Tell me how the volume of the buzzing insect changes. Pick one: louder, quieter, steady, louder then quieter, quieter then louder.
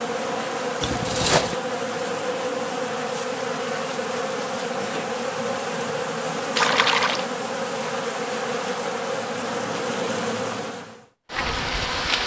steady.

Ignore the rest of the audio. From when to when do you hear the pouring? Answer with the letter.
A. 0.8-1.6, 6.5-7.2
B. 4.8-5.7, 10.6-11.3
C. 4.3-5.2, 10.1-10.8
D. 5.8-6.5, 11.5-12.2
A.